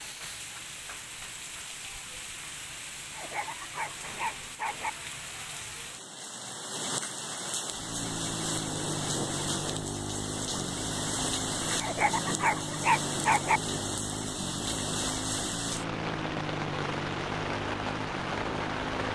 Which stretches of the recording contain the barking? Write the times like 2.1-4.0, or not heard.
3.1-4.9, 11.8-13.6.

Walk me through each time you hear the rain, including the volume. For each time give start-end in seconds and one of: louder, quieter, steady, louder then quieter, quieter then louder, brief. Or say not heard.
0.0-19.1 louder.